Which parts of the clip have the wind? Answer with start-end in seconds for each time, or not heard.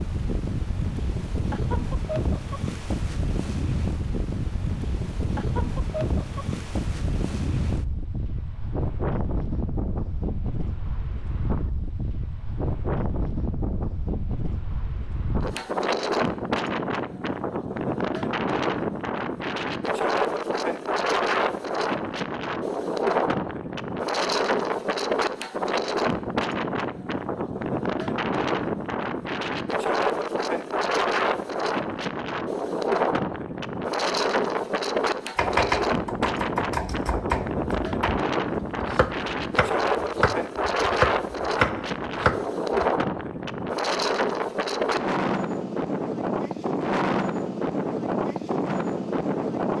0.0-49.7.